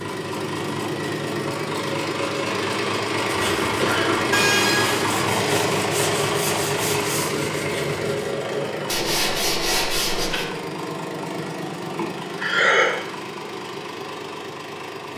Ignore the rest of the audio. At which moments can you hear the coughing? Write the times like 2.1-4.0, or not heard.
3.6-4.7, 11.9-12.9.